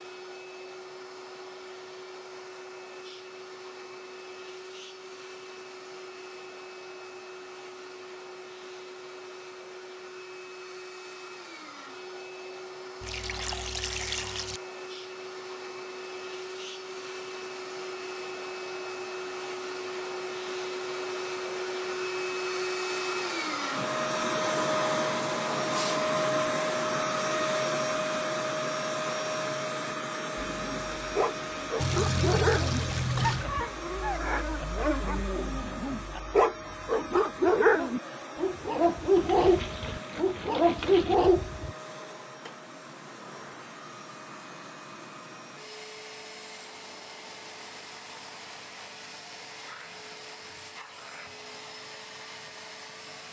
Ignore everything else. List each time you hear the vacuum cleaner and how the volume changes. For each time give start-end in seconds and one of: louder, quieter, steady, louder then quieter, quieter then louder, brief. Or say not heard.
0.0-53.2 louder then quieter.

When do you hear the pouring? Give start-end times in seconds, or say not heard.
13.0-14.6, 31.8-33.5, 39.1-41.1.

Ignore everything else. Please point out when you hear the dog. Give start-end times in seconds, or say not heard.
30.4-41.7.